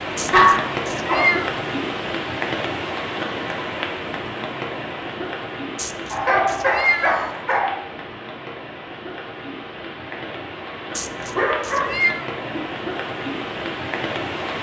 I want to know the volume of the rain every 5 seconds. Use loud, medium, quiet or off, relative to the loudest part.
loud, medium, loud.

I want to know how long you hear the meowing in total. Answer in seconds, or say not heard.
4 s.